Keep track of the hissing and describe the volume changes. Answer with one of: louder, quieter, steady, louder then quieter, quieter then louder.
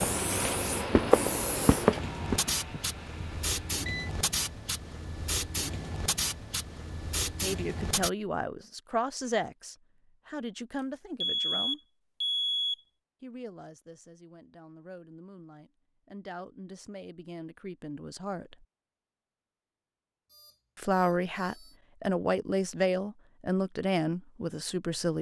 steady.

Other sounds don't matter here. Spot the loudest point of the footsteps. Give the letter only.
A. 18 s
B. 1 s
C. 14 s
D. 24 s
B.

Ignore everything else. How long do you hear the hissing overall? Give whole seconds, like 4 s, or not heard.
8 s.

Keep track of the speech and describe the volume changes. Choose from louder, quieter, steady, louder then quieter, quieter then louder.
quieter then louder.